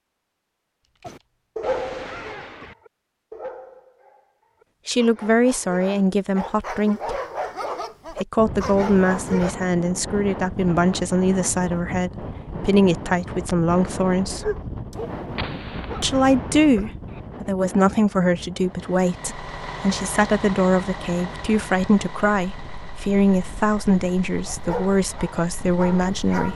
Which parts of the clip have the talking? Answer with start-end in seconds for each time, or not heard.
4.8-7.2, 8.1-14.5, 16.0-26.5.